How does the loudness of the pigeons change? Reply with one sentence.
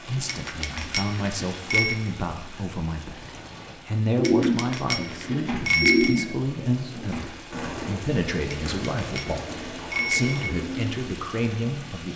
The loudness of the pigeons goes down.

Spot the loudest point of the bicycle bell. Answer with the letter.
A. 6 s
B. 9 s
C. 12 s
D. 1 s
A.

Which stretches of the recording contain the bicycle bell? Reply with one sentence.
You can hear the bicycle bell from 0.2 to 1.9 s, from 4.2 to 6.2 s and from 8.5 to 10.6 s.